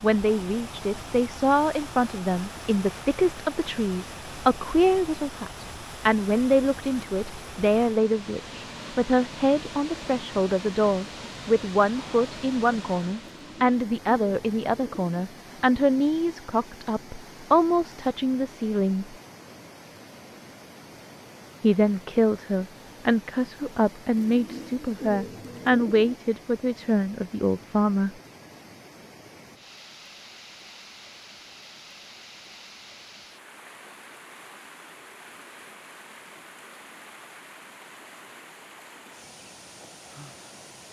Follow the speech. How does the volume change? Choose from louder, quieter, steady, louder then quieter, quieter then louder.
steady.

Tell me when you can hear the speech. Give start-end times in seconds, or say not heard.
0.0-19.1, 21.6-28.1.